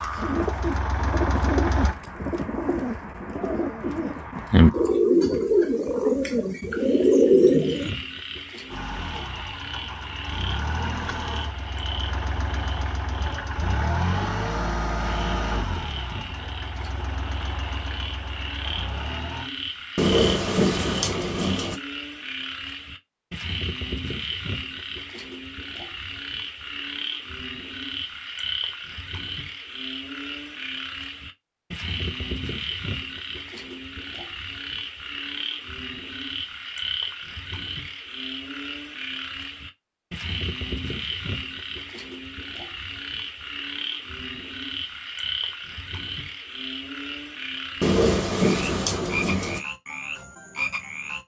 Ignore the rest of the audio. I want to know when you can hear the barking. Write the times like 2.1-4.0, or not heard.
not heard.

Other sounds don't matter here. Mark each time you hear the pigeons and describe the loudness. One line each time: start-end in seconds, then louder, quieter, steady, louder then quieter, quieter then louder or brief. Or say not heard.
0.1-7.9 louder.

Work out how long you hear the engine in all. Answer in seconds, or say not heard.
13 s.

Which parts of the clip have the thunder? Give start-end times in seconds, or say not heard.
19.9-21.8, 47.8-49.6.